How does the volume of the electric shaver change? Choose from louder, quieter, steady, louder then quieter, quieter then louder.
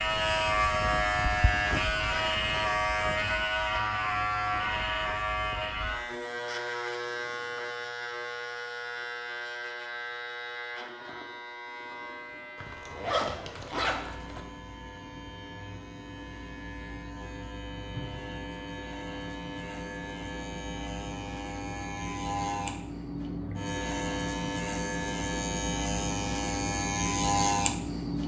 quieter then louder.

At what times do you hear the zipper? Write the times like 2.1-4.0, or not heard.
12.6-14.4.